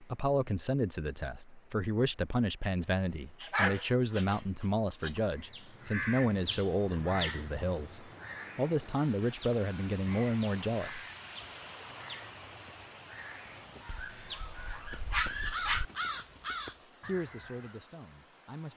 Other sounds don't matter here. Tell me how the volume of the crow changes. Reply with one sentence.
The loudness of the crow goes down, then up.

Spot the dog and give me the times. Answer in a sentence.
The dog can be heard from 2.9 to 5.2 s and from 13.8 to 15.8 s.